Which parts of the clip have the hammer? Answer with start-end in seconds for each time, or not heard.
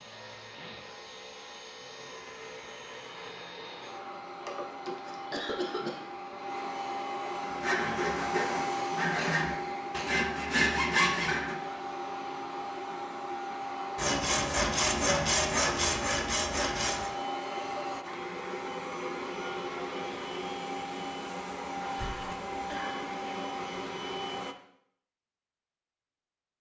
not heard.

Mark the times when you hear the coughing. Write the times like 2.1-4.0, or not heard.
4.5-6.0, 9.2-10.2, 21.9-23.1.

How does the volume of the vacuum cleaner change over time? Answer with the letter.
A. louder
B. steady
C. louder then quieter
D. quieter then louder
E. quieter
A.